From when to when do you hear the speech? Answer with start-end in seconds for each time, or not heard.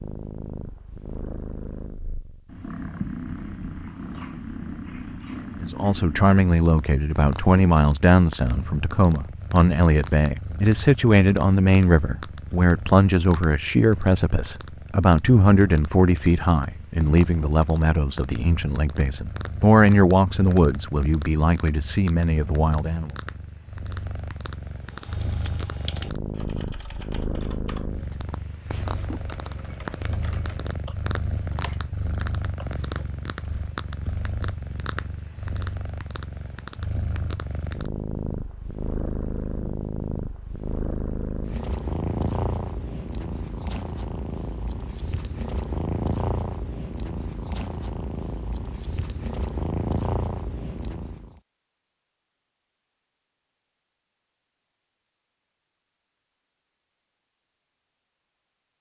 5.6-23.1.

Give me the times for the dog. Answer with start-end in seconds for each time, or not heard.
not heard.